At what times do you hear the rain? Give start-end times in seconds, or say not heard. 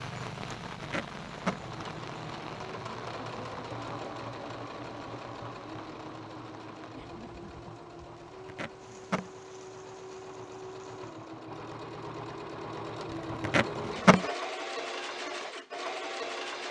0.0-11.2.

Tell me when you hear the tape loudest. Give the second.
14 s.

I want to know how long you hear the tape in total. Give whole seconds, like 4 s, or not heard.
3 s.